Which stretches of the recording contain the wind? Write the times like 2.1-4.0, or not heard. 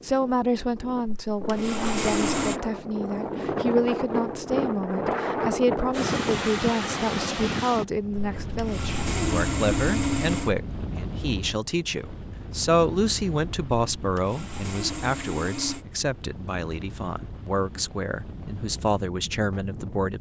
0.0-20.1.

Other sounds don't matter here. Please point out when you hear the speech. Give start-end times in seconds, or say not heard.
0.0-20.1.